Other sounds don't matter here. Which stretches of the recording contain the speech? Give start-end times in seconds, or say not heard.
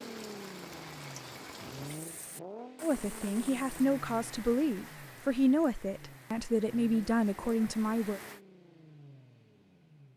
2.8-8.2.